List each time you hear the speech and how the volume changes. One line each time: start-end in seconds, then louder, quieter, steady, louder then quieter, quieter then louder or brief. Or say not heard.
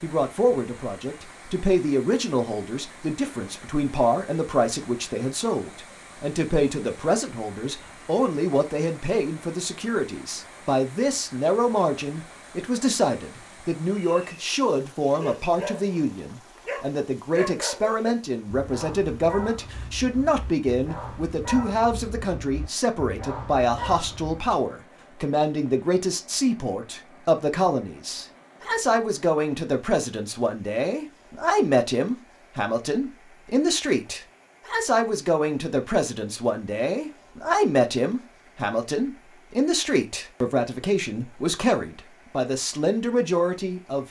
0.0-44.0 steady.